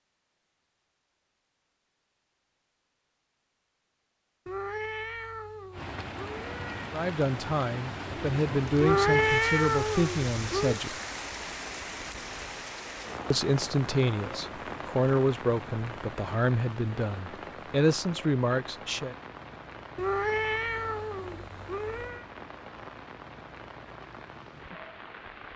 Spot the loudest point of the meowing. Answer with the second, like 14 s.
9 s.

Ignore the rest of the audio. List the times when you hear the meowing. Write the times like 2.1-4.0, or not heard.
4.5-7.0, 8.8-10.8, 19.9-22.2.